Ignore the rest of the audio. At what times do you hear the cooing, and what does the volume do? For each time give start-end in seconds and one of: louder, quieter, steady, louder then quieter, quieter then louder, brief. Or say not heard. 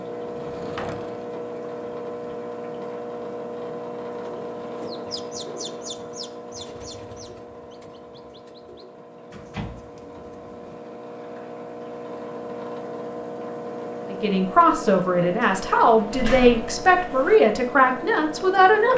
4.2-10.8 quieter.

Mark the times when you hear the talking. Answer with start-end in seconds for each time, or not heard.
14.1-18.9.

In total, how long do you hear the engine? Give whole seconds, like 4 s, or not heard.
19 s.